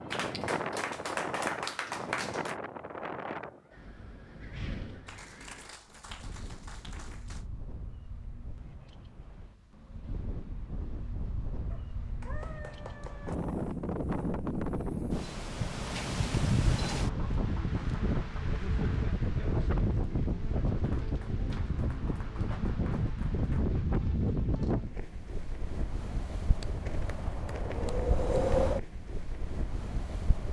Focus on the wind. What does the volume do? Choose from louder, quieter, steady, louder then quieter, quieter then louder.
quieter then louder.